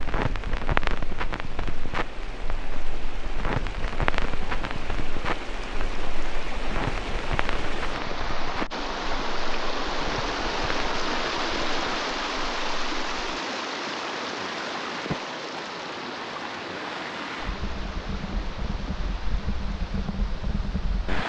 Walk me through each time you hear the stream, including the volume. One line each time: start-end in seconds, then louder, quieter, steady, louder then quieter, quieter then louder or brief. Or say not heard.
0.0-21.2 louder then quieter.